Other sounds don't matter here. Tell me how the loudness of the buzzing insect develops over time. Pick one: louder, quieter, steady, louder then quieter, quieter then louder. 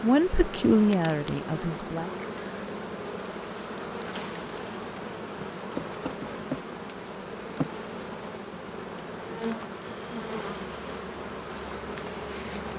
steady.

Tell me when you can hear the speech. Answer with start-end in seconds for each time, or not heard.
0.0-2.1.